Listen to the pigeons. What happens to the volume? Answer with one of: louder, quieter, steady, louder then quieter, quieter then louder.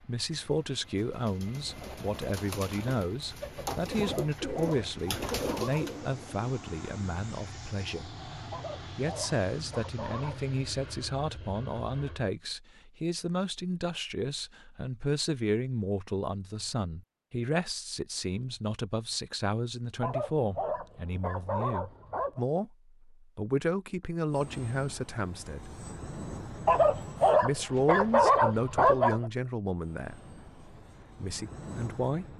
louder.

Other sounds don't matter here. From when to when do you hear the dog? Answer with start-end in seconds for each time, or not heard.
4.0-5.9, 8.5-10.4, 20.0-22.4, 26.6-29.3.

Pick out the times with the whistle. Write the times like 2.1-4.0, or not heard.
not heard.